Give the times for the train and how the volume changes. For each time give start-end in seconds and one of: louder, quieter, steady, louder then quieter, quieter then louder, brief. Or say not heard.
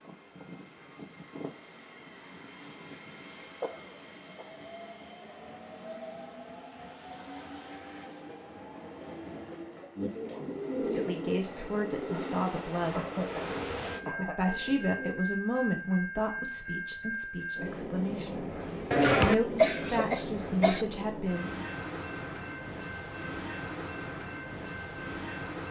0.0-25.6 louder.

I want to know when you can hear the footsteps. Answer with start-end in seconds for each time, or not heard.
not heard.